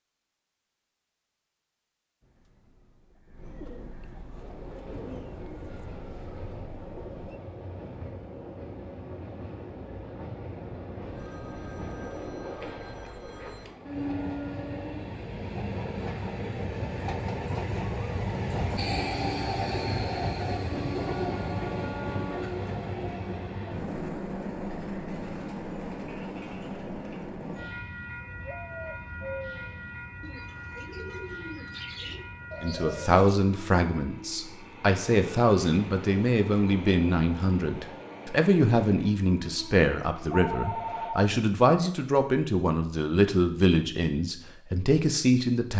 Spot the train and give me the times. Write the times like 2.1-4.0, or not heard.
4.3-41.1.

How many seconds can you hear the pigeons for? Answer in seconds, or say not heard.
10 s.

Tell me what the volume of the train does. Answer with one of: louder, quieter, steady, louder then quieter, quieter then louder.
louder then quieter.